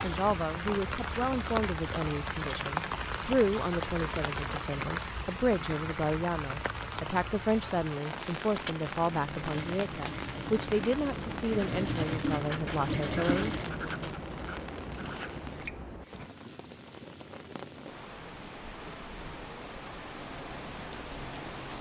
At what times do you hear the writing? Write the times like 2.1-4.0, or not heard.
8.1-16.3.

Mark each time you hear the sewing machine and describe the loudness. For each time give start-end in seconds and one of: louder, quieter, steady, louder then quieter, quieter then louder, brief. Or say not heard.
9.4-13.7 louder.